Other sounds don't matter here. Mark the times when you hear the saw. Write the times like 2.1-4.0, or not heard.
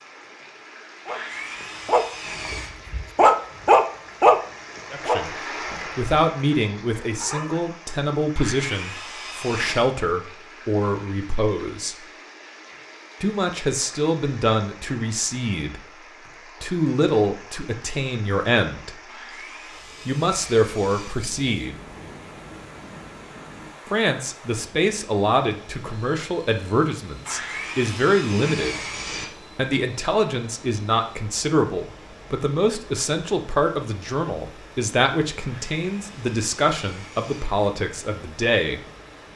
1.1-2.7, 8.3-9.9, 19.1-21.1, 27.2-29.2, 35.4-37.5.